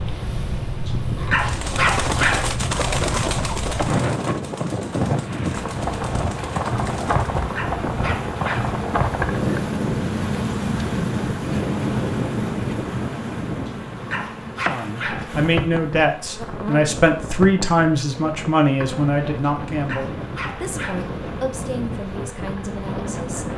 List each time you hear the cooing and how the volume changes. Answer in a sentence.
The cooing can be heard from 1.4 to 7.5 s, getting quieter.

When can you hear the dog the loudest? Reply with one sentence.
The loudest moment of the dog is at 2 seconds.